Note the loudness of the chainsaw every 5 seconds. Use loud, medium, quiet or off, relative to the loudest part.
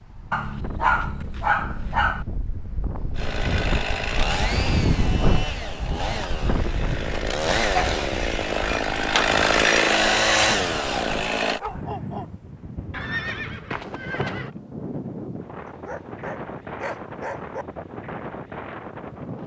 medium, loud, loud, off.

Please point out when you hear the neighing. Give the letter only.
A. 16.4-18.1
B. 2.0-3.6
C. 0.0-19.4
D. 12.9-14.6
D.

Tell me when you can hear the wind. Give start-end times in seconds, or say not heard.
0.0-19.4.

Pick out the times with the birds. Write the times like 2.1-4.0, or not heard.
not heard.